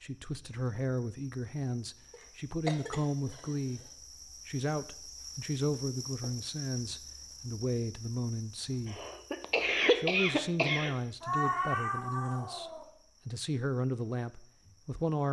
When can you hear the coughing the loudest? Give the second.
10 s.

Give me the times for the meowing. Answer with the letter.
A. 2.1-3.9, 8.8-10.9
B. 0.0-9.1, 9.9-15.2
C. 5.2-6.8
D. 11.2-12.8
D.